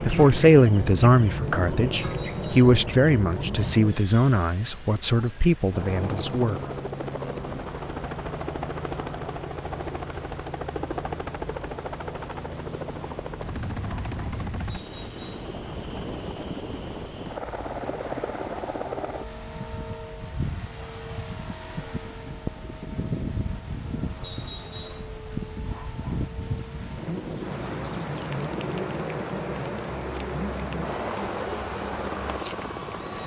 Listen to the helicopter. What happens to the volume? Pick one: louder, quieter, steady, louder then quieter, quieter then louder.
steady.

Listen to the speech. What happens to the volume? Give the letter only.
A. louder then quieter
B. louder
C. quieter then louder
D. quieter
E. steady
D.